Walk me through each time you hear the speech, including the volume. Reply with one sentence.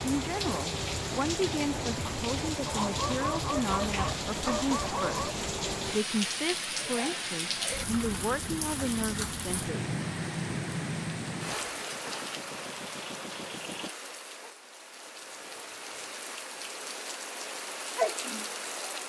You can hear the speech from 0.0 to 9.9 s, at a steady volume.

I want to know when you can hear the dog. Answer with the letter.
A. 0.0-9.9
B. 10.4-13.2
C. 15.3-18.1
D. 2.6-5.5
D.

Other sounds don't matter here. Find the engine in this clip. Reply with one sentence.
The engine can be heard from 11.4 to 13.9 s.